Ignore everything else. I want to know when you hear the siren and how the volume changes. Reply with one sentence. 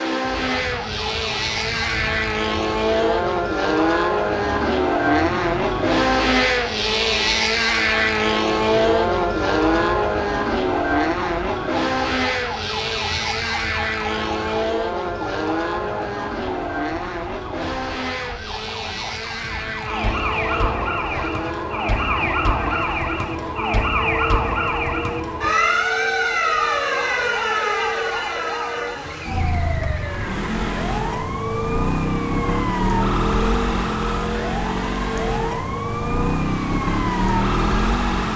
The siren can be heard from 0.1 to 38.3 s, getting louder.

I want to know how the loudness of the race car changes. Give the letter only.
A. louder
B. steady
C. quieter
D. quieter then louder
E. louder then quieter
C.